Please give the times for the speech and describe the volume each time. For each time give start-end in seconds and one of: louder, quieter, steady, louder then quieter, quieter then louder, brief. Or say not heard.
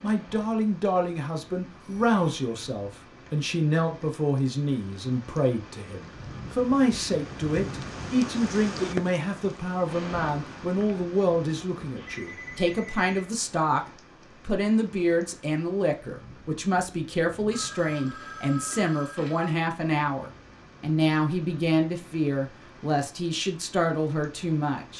0.0-13.8 steady
14.4-24.9 steady.